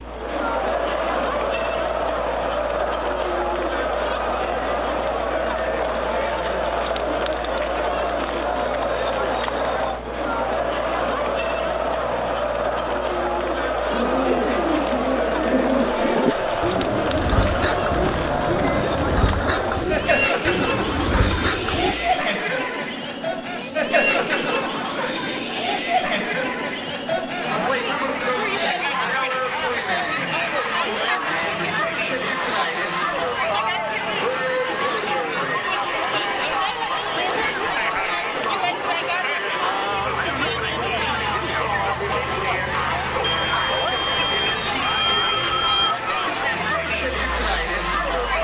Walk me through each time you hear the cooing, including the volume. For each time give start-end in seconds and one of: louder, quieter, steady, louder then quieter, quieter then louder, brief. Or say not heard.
13.9-21.9 steady.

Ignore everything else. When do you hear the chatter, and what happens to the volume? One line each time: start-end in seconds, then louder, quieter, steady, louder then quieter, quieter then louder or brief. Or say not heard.
0.0-48.3 steady.